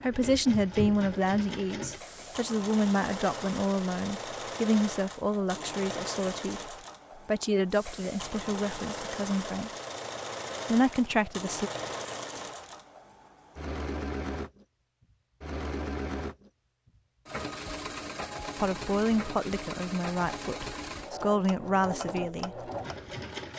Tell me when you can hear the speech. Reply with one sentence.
The speech can be heard from 0.0 to 9.7 s, from 10.7 to 11.7 s and from 18.6 to 22.6 s.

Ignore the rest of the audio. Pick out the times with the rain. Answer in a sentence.
You can't hear the rain here.